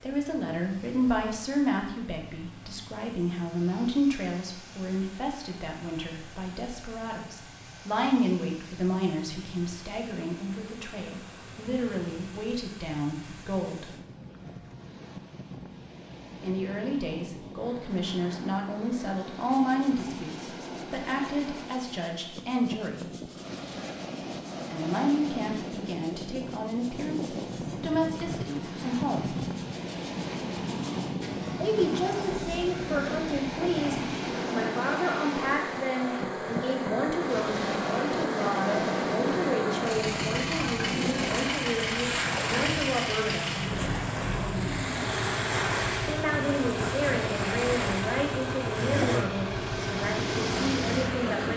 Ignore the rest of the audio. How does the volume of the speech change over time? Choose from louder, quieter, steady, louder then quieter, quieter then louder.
steady.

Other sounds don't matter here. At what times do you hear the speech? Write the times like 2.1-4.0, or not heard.
0.0-13.9, 16.4-23.1, 24.7-29.4, 31.6-43.5, 46.0-51.5.